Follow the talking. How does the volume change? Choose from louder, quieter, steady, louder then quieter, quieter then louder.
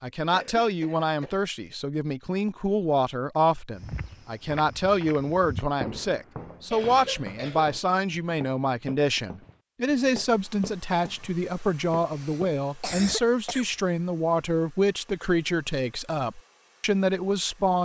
steady.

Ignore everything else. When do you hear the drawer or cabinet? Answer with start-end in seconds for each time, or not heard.
not heard.